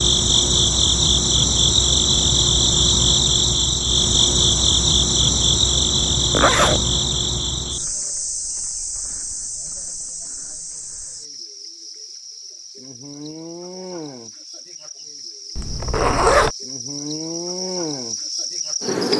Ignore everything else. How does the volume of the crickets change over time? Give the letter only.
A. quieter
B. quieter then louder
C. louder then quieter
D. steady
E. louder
B.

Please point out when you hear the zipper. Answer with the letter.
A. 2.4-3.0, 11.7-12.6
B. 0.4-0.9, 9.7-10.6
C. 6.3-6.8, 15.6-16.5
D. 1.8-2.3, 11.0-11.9
C.